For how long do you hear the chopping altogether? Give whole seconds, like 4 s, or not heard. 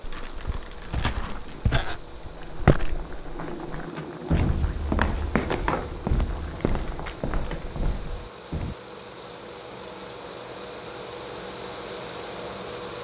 not heard.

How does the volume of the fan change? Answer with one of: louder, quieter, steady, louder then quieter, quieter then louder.
louder.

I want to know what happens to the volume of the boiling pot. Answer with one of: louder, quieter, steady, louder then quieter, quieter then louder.
louder then quieter.